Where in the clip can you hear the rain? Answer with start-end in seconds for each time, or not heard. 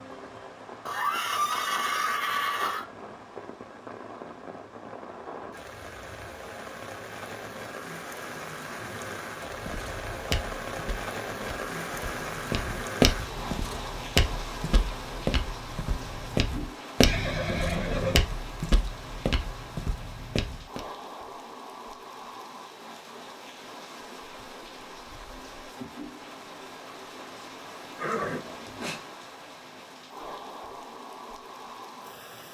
0.0-32.4.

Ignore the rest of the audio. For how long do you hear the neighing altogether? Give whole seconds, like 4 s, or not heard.
4 s.